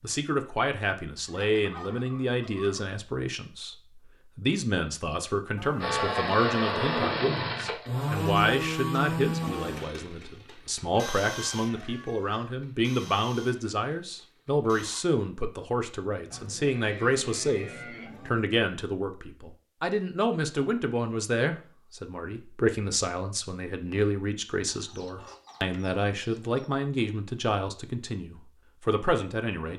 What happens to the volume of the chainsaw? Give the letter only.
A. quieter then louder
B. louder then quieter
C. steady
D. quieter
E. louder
D.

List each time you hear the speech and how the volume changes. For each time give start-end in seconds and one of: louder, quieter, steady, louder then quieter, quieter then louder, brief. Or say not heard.
0.0-29.7 steady.